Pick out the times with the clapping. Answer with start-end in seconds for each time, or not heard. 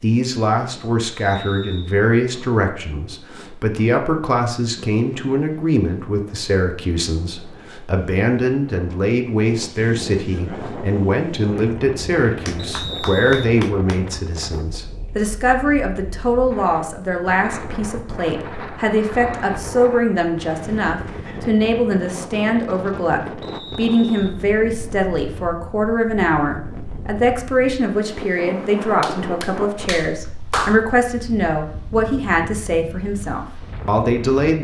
12.4-14.0, 28.8-30.8.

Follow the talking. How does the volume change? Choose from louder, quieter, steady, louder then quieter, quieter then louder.
steady.